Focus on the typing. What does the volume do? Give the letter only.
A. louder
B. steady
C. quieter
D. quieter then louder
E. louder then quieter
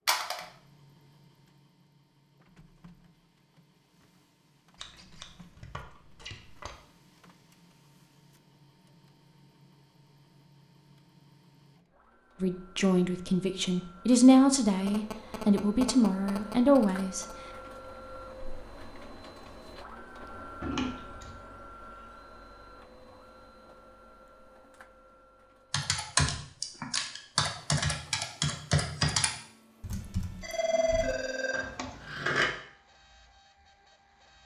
C.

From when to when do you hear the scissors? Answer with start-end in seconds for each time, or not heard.
4.8-6.8, 20.6-21.4, 31.5-32.5.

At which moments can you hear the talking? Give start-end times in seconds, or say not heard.
12.4-17.2.